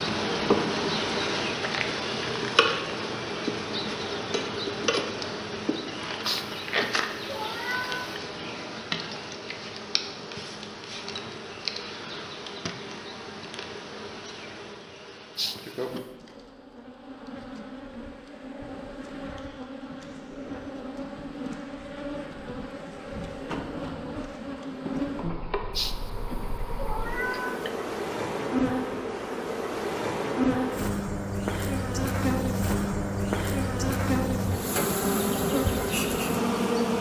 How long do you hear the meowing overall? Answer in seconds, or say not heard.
5 s.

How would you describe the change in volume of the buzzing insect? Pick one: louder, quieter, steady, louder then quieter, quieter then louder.
quieter then louder.